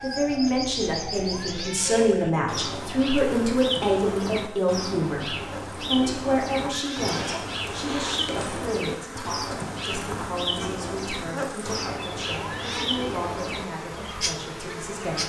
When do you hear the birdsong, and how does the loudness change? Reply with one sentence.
The birdsong can be heard from 0.0 to 15.2 s, at a steady volume.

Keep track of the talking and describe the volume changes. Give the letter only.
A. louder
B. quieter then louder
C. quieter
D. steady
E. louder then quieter
C.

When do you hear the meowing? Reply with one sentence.
You can hear the meowing from 1.2 to 2.0 s, from 6.7 to 8.2 s and from 12.4 to 12.8 s.